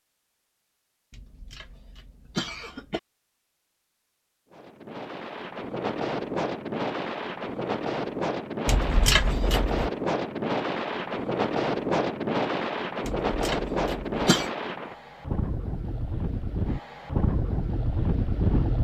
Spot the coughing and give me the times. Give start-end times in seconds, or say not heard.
1.1-3.0, 8.7-9.9, 13.1-14.5.